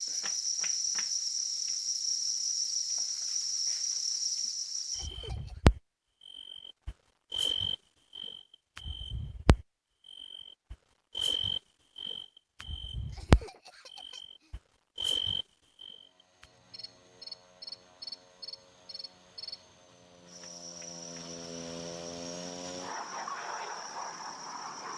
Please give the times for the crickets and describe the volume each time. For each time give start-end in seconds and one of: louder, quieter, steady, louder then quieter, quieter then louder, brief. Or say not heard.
0.0-24.9 quieter.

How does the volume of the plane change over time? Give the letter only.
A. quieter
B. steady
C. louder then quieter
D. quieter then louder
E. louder
E.